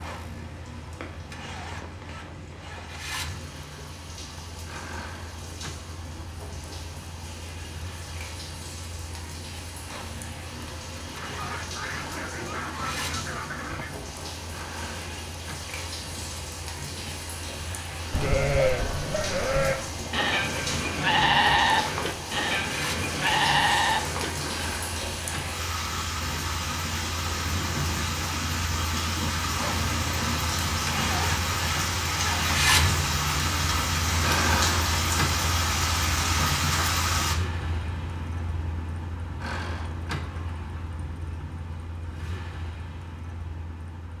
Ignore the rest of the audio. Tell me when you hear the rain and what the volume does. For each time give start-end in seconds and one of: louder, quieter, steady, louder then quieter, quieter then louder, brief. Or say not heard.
0.0-37.4 louder.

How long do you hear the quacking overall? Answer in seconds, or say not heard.
3 s.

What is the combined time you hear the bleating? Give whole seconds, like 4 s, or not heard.
7 s.